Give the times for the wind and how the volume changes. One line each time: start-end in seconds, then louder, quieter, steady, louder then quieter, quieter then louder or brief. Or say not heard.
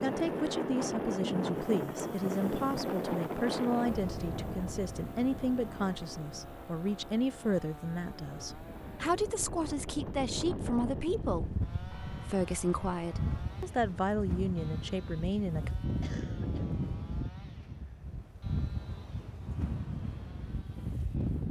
0.0-21.4 quieter then louder.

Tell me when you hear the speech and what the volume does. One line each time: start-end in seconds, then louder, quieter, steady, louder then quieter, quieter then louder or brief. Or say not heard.
0.0-15.7 steady.